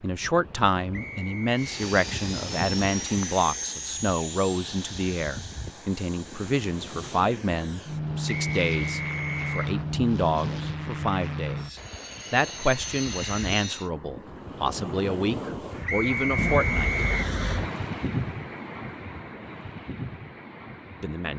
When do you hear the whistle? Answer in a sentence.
You can hear the whistle from 0.9 to 1.6 s, from 8.2 to 9.6 s and from 15.8 to 17.3 s.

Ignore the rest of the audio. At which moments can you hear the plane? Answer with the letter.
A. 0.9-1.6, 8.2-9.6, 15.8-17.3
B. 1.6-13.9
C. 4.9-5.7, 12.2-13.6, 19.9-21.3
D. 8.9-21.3
B.